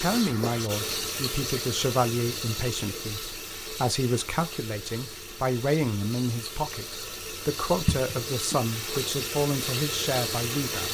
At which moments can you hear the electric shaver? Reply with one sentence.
You can't hear the electric shaver here.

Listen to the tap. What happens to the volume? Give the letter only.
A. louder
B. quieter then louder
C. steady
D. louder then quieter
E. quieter
B.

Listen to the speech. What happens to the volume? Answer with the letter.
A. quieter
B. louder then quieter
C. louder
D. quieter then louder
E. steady
E.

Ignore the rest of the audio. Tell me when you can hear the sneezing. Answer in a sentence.
The sneezing can be heard from 7.8 to 9.0 s.